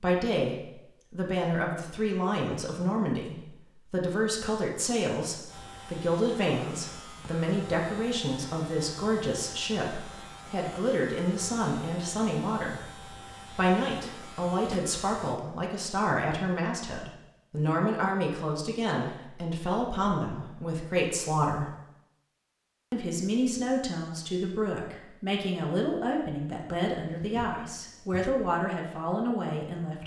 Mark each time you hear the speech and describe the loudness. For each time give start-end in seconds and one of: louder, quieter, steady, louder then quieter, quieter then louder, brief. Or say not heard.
0.0-21.8 steady
22.9-30.0 steady.